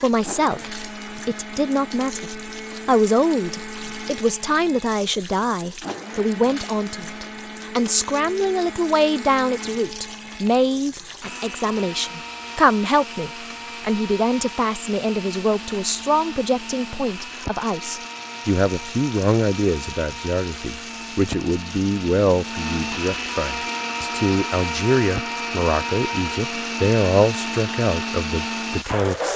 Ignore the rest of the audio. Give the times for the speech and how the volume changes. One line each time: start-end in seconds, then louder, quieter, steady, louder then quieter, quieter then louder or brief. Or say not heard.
0.0-29.3 steady.